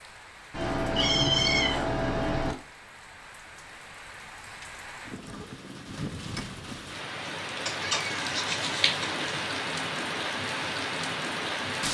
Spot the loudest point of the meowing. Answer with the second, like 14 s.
1 s.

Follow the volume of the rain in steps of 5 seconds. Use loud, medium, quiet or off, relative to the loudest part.
quiet, loud, loud.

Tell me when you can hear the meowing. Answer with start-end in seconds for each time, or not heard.
0.5-2.5, 7.7-9.2.